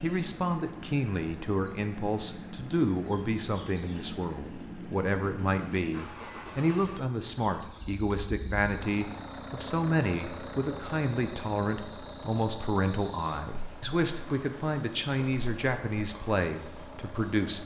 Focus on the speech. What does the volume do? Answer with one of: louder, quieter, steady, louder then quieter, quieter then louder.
steady.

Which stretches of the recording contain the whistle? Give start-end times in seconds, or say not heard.
not heard.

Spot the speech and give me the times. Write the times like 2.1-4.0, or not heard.
0.0-17.6.